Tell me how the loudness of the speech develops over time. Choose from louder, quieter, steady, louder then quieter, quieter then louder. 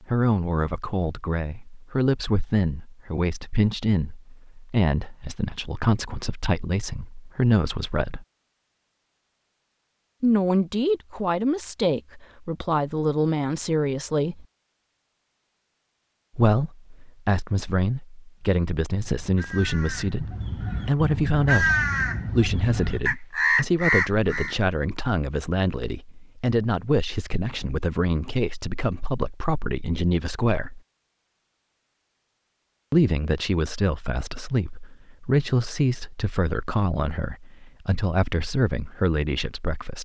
steady.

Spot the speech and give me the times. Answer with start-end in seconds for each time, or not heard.
0.0-8.2, 10.2-14.4, 16.4-30.8, 32.9-40.0.